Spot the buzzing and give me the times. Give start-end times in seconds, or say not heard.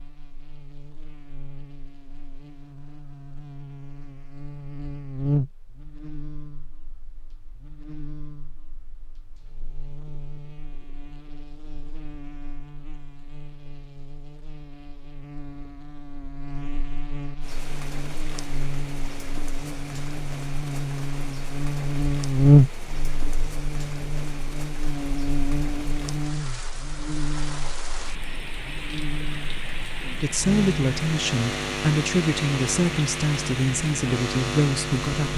0.0-35.3.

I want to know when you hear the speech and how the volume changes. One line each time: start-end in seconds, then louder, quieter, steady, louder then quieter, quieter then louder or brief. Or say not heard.
30.2-35.3 steady.